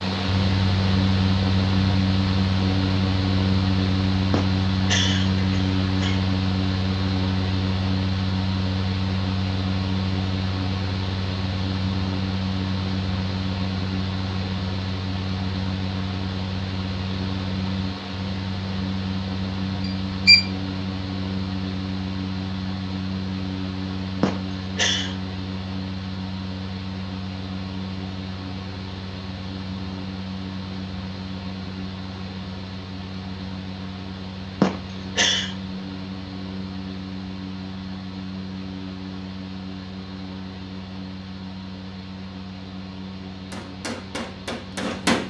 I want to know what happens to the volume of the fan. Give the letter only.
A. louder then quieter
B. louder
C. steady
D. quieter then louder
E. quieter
E.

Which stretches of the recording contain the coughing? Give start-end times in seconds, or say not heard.
4.3-6.3, 24.2-25.1, 34.6-35.5.